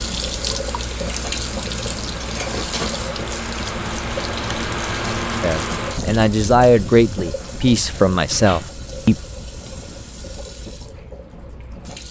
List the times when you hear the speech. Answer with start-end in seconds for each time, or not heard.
5.4-9.2.